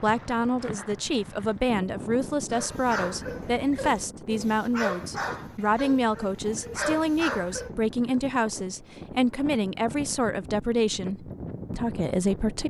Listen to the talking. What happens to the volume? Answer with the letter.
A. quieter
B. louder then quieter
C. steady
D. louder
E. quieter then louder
C.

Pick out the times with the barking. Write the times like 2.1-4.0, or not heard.
2.5-8.3.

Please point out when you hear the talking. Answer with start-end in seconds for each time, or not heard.
0.0-12.6.